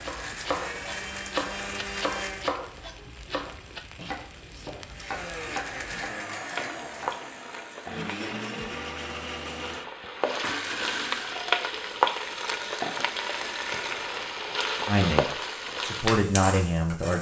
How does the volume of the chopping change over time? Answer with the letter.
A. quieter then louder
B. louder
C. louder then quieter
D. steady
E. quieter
E.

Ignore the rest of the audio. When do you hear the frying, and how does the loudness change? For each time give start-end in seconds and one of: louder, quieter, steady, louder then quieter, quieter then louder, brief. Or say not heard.
0.0-17.1 louder.